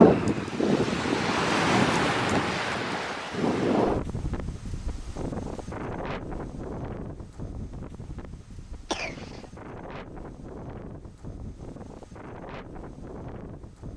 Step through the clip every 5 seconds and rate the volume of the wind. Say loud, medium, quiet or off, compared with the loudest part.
loud, quiet, quiet.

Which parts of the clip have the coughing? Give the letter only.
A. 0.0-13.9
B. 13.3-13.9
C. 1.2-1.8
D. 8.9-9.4
D.